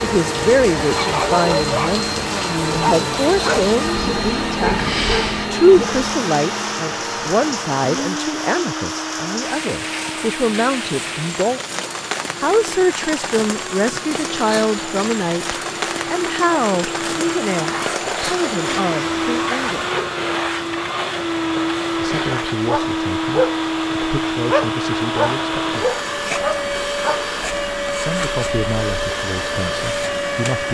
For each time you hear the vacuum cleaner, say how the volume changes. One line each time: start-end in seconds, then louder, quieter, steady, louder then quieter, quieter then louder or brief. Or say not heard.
0.0-30.6 quieter then louder.